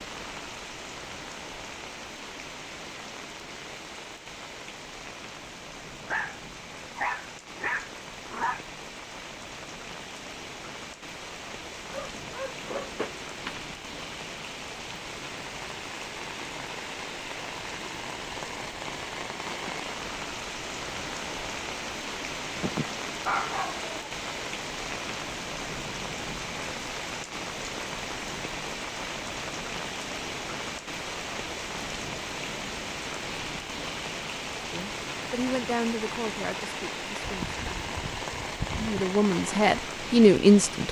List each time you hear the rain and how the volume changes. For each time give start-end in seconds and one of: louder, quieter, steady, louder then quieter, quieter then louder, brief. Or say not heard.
0.0-40.8 louder.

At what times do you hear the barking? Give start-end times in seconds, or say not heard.
6.0-8.6, 11.9-13.6, 22.6-23.9, 37.2-39.0.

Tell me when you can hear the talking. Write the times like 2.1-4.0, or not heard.
34.7-38.0, 38.8-40.8.